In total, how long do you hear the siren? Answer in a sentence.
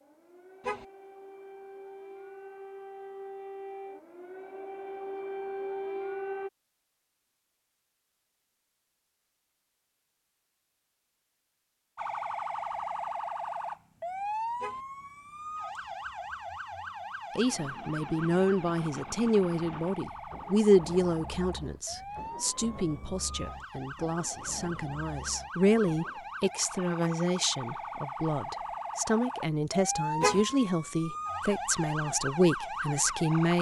The siren can be heard for 28 seconds in total.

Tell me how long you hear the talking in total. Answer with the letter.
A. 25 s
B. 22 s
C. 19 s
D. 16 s
D.